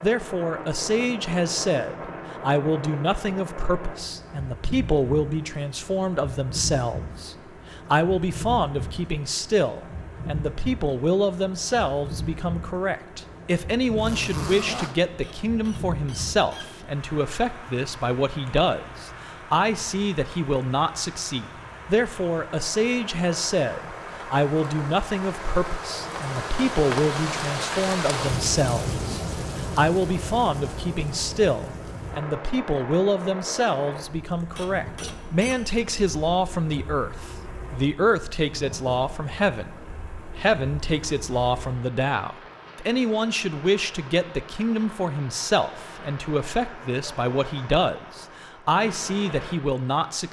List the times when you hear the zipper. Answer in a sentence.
You can hear the zipper from 13.9 to 14.9 s.